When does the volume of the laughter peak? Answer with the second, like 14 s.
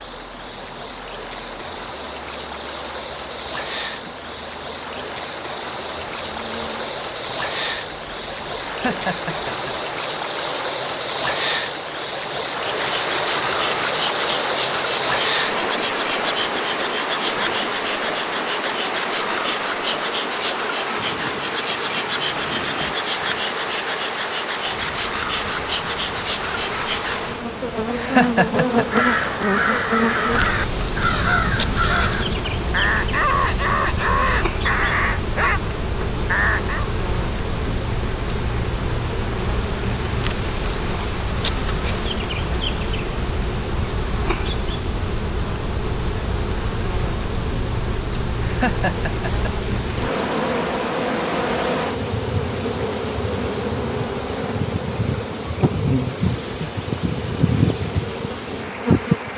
28 s.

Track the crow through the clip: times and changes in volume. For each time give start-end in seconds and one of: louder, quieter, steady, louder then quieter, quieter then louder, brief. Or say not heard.
28.8-36.9 steady.